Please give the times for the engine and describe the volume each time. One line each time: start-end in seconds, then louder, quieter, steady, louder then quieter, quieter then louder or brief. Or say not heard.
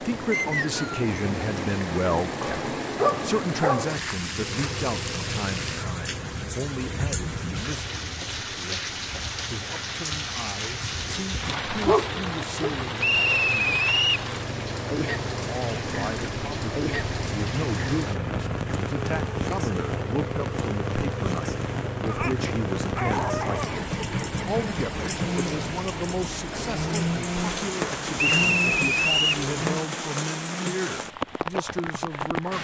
4.3-29.9 louder.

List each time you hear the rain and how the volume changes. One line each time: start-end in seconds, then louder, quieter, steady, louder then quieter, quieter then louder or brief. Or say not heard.
0.0-32.5 steady.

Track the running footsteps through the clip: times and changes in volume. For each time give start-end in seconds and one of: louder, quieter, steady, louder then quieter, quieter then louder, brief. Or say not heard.
not heard.